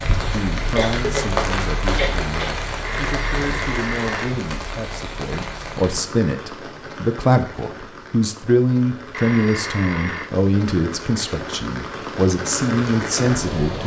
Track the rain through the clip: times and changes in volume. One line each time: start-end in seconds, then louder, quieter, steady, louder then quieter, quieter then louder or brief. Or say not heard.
0.0-13.8 quieter then louder.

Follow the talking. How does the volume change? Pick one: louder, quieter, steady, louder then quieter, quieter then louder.
louder.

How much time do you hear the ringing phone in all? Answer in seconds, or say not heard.
3 s.